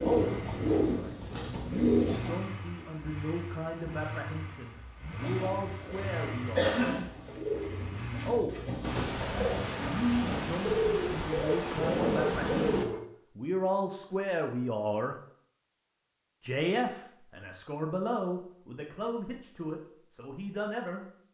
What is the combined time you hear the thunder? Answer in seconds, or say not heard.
4 s.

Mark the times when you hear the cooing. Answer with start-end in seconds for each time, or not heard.
0.0-2.5, 5.2-13.0.